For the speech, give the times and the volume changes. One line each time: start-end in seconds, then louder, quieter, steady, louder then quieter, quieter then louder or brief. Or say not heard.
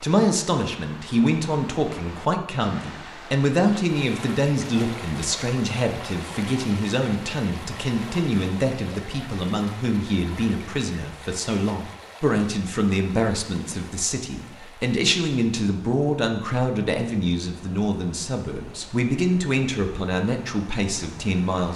0.0-21.7 steady.